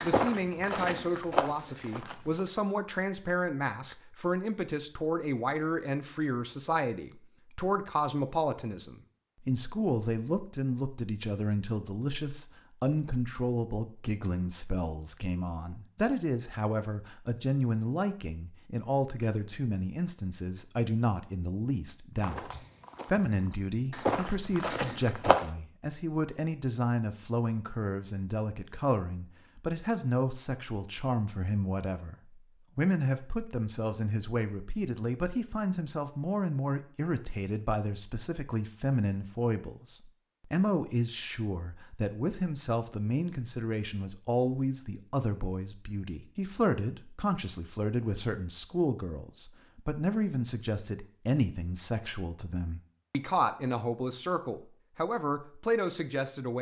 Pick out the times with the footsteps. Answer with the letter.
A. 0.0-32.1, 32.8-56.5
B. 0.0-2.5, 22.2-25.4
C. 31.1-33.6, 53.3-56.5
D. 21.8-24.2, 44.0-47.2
B.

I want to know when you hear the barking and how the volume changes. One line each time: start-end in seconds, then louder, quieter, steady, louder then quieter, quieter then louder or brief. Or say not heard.
not heard.